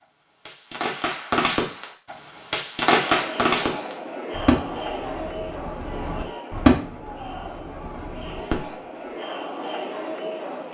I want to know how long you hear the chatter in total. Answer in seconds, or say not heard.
8 s.